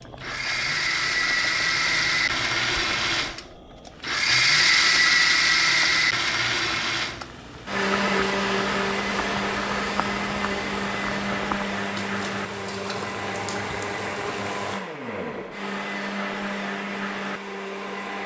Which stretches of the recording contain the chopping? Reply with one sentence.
The chopping can't be heard in this clip.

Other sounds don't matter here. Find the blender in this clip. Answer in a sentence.
You can hear the blender from 0.0 to 18.2 s.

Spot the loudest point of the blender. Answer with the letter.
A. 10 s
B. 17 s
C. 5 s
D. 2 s
C.